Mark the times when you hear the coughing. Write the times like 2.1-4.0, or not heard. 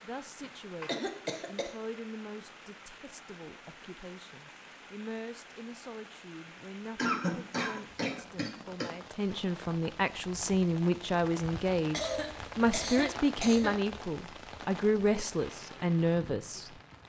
0.4-1.8, 7.0-8.9, 11.9-13.8.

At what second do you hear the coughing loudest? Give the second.
7 s.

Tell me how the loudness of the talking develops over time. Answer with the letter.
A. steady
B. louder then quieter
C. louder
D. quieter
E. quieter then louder
C.